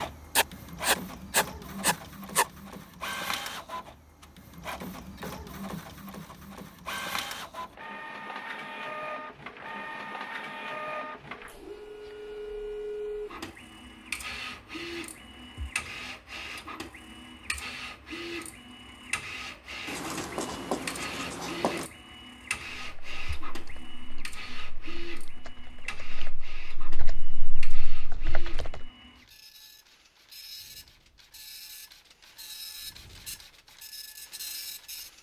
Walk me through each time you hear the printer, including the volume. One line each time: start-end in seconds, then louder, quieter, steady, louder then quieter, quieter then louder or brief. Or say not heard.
0.0-35.1 quieter.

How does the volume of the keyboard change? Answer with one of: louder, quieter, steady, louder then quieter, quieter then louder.
louder.